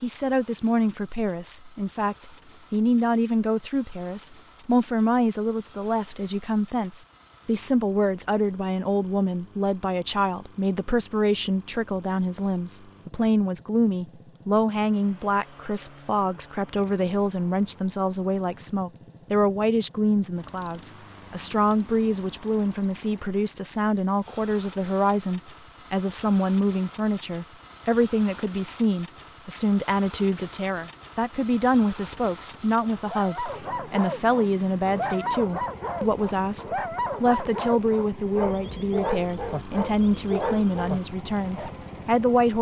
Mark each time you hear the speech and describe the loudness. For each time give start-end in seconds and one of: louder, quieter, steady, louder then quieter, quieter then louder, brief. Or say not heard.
0.0-42.5 steady.